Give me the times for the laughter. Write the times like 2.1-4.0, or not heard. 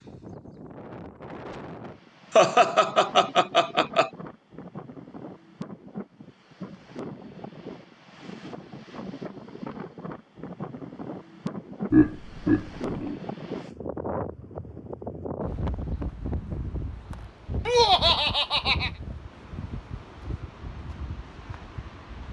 2.4-4.1, 11.9-13.2, 17.6-18.9.